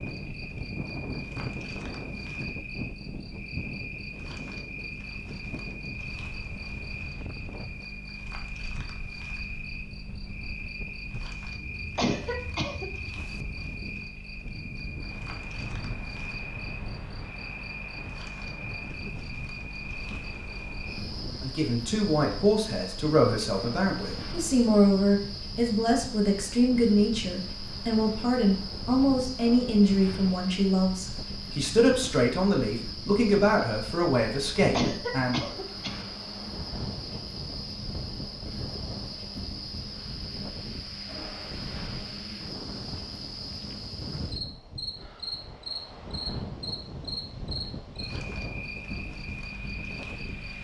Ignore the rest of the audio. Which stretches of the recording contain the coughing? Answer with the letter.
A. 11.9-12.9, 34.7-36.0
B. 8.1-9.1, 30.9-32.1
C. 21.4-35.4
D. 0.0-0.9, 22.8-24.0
A.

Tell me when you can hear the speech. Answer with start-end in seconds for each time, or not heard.
21.4-35.4.